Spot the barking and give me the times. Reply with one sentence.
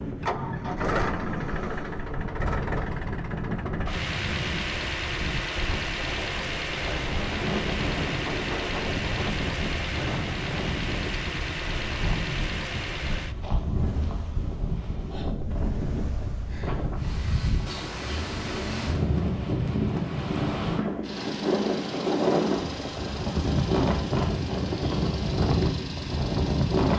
You can't hear the barking here.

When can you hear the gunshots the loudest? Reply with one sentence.
The loudest moment of the gunshots is at 8 seconds.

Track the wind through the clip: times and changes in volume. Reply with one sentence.
The wind can be heard from 0.0 to 26.9 s, getting louder.